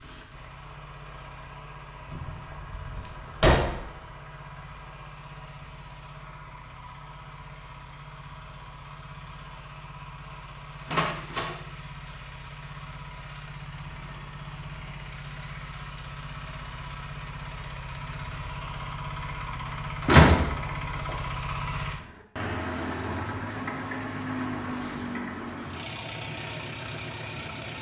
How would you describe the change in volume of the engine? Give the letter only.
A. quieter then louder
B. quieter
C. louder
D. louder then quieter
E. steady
C.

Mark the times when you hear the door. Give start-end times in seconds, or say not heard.
2.1-3.8, 10.9-11.6, 20.1-20.5.